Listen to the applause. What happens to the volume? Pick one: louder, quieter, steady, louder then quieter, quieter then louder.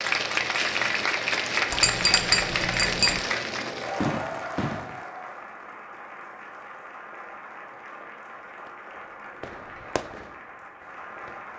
quieter.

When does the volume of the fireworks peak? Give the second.
4 s.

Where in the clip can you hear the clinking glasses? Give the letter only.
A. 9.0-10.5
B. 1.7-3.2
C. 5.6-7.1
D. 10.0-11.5
B.